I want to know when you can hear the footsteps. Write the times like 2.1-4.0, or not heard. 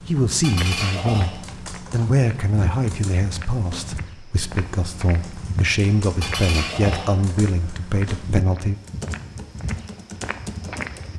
0.4-11.1.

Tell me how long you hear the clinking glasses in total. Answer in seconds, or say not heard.
3 s.